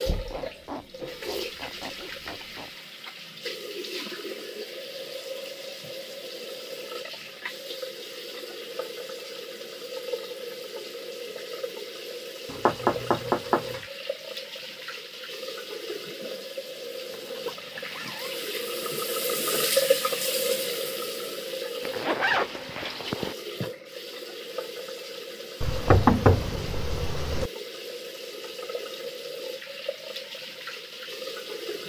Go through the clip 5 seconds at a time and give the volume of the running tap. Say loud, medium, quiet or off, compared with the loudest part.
medium, medium, medium, loud, loud, medium, medium.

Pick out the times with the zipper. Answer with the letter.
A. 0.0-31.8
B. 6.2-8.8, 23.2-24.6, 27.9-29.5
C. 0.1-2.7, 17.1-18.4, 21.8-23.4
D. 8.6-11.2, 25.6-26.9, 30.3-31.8
C.